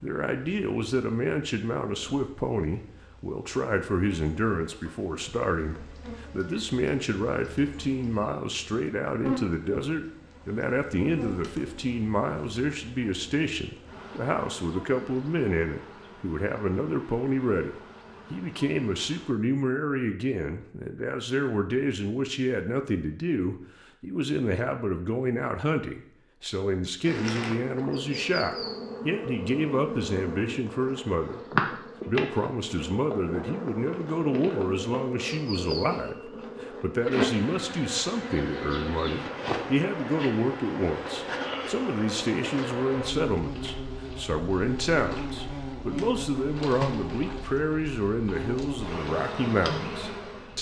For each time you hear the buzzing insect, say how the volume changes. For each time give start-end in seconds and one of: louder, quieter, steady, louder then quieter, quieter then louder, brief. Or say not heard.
0.0-19.3 louder then quieter
27.0-50.5 steady.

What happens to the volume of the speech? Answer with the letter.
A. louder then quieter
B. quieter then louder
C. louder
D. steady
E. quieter
D.